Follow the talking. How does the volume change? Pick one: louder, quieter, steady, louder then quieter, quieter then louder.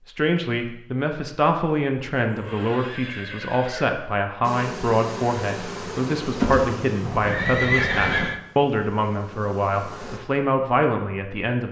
steady.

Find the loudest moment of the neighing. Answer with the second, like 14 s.
8 s.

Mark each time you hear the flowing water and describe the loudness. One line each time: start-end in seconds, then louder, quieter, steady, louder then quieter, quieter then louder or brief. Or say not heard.
not heard.